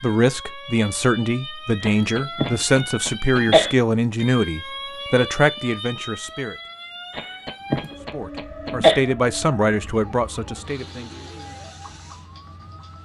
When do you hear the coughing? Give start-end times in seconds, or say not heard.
1.8-3.7, 7.2-9.0.